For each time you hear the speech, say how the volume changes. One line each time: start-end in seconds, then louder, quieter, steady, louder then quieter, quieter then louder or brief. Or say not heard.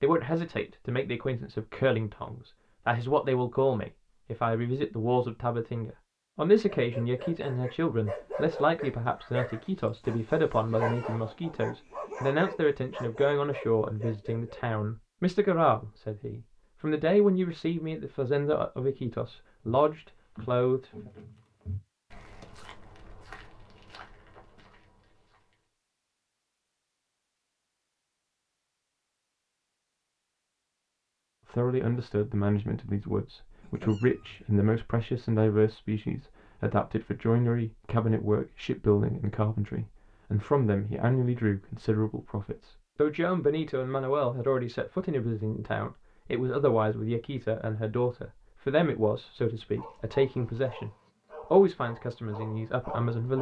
0.0-21.1 steady
31.5-50.9 steady
51.5-53.3 brief.